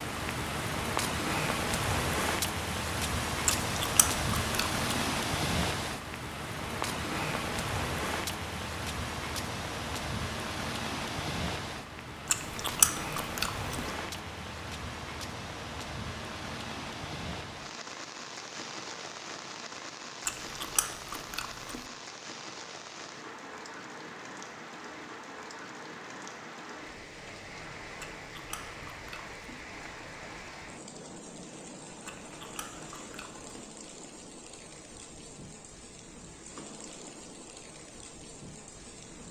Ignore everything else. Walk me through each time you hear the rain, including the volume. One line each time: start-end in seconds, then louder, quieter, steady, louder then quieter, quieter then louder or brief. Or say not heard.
0.0-39.2 quieter.